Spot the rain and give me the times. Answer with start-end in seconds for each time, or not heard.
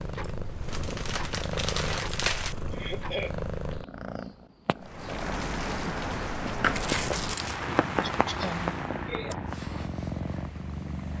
4.8-11.1.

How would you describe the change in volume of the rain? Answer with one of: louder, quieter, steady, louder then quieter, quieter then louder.
quieter.